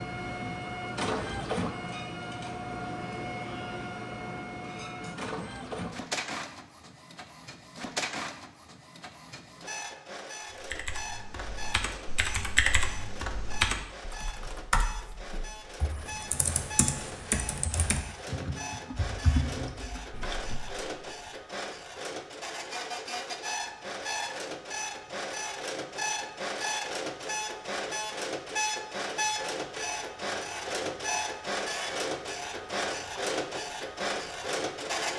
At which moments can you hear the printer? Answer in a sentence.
You can hear the printer from 0.0 to 35.1 s.